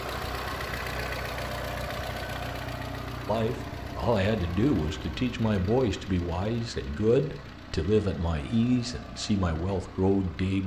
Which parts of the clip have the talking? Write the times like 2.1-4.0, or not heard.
3.2-10.6.